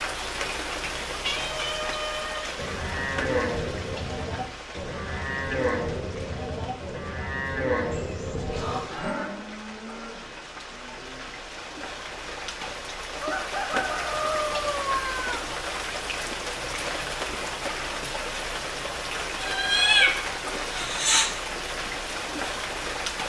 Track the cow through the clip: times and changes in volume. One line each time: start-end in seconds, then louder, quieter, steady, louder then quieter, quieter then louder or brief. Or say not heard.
2.5-11.3 quieter.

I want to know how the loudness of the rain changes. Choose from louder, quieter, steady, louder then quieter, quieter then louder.
quieter then louder.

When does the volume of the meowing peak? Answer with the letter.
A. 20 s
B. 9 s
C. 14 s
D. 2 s
A.